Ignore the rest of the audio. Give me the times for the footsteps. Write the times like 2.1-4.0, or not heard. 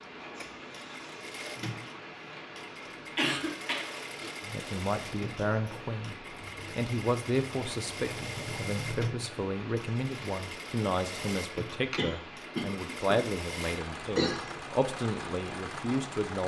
not heard.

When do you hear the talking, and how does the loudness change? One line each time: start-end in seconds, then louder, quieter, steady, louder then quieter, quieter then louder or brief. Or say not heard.
4.5-16.4 steady.